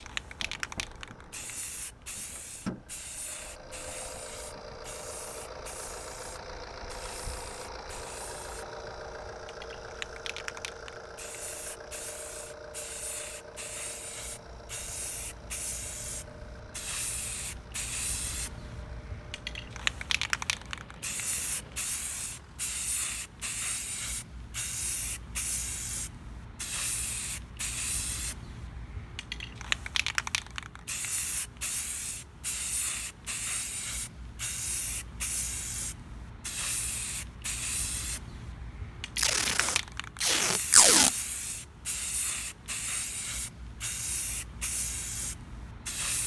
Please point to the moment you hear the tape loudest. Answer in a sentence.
The volume of the tape peaks at 41 seconds.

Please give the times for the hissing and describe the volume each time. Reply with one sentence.
The hissing can be heard from 0.0 to 46.2 s, getting louder.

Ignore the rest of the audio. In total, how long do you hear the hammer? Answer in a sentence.
The hammer can't be heard in this clip.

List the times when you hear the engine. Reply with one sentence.
You can hear the engine from 0.0 to 22.7 s.